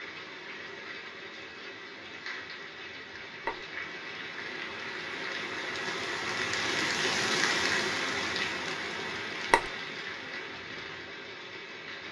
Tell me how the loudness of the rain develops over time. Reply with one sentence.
The loudness of the rain goes up, then down.